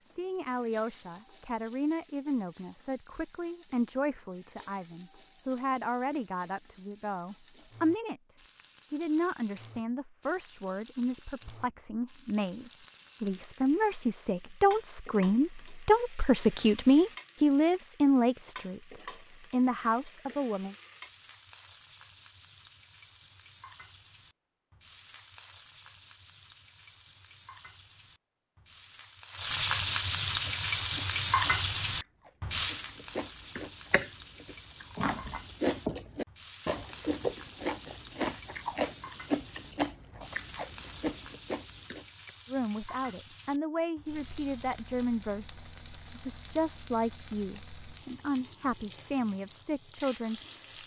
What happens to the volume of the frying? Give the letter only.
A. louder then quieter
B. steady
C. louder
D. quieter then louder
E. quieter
A.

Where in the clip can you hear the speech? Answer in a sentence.
You can hear the speech from 0.1 to 20.8 s and from 42.5 to 50.5 s.